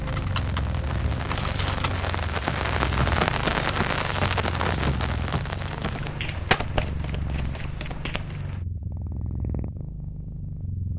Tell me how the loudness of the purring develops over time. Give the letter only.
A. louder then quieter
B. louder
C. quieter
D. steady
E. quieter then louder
D.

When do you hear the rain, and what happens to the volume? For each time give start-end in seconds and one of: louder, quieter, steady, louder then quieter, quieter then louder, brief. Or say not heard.
0.0-8.7 louder then quieter.